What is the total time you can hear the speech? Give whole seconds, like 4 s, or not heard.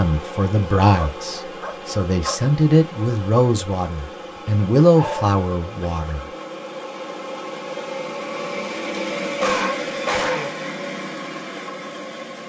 6 s.